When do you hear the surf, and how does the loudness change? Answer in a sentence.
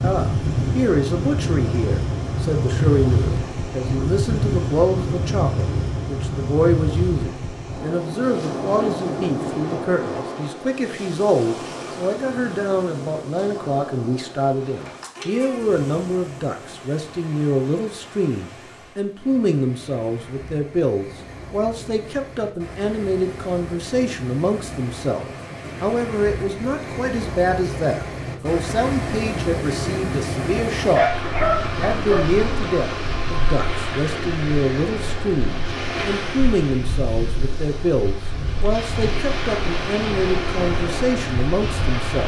You can hear the surf from 0.0 to 42.2 s, getting quieter then louder.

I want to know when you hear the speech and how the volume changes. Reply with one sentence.
The speech can be heard from 0.0 to 42.2 s, at a steady volume.